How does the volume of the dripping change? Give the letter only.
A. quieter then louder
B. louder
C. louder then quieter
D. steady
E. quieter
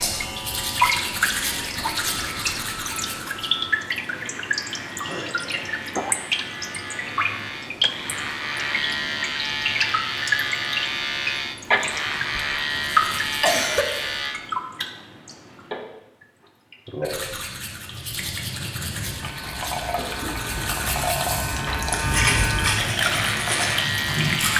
A.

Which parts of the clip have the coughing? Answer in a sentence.
The coughing can be heard from 4.1 to 5.6 s, from 11.8 to 12.5 s, from 13.1 to 13.8 s and from 19.9 to 20.8 s.